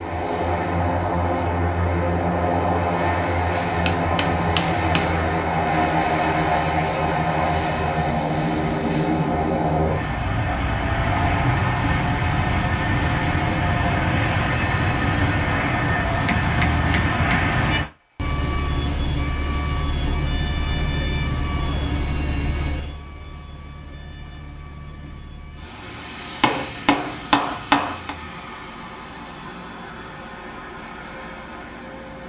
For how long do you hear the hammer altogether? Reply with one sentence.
The hammer can be heard for 5 seconds in total.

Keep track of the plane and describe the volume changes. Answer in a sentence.
The volume of the plane goes down.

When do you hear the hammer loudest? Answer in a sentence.
The volume of the hammer peaks at 28 seconds.